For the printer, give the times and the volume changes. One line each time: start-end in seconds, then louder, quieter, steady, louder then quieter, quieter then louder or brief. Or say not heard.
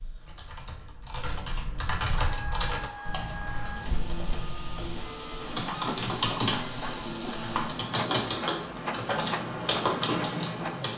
2.1-10.9 steady.